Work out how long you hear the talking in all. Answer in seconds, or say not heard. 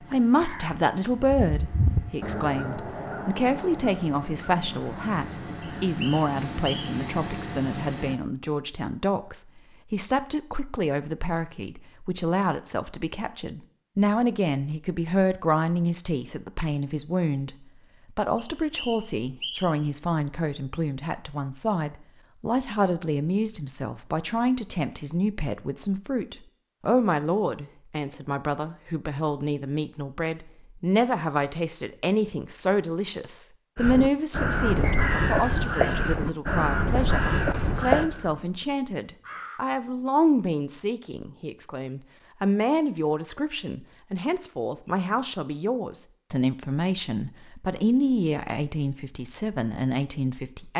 50 s.